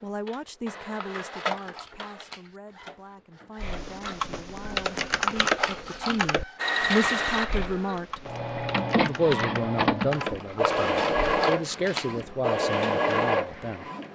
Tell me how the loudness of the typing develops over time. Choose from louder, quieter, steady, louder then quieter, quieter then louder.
quieter then louder.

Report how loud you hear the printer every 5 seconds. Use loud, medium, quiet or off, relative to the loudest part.
medium, loud, loud.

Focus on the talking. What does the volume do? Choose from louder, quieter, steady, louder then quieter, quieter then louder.
quieter then louder.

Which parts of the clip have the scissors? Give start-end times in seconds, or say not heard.
0.8-2.5, 5.0-6.2, 10.4-12.2.